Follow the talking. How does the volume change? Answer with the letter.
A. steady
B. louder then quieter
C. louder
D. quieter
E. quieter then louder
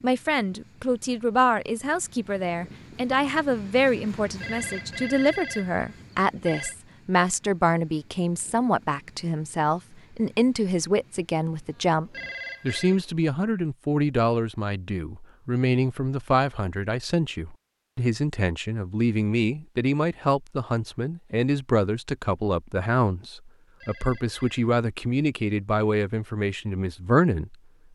A.